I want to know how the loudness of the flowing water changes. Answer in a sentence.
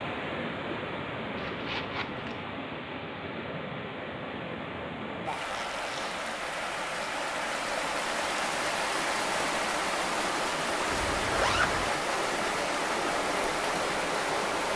The volume of the flowing water goes up.